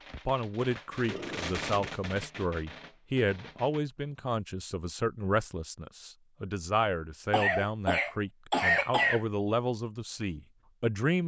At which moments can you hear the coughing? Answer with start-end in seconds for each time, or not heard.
1.1-1.9, 7.3-9.2.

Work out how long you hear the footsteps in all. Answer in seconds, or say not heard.
not heard.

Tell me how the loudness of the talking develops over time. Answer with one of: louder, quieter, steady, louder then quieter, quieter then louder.
steady.